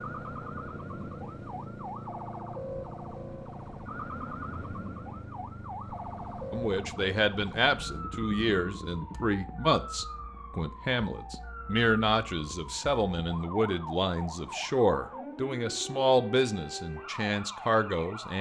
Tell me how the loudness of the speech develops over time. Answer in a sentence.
The loudness of the speech stays about the same.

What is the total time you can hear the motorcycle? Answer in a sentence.
You can hear the motorcycle for 9 seconds altogether.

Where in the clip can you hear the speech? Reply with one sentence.
The speech can be heard from 6.5 to 18.3 s.